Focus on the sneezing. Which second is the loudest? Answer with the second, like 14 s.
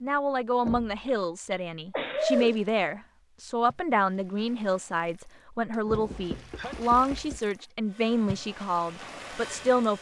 2 s.